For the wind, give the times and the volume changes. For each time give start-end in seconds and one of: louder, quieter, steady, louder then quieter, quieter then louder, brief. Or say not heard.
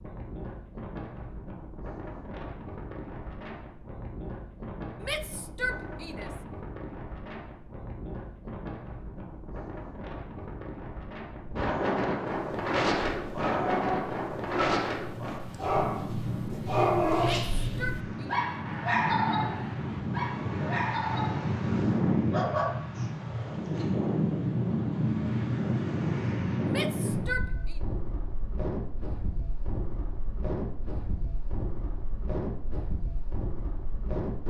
0.0-34.4 louder then quieter.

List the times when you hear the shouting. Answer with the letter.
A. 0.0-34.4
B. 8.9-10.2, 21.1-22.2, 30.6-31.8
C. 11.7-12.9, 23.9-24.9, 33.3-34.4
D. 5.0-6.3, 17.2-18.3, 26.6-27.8
D.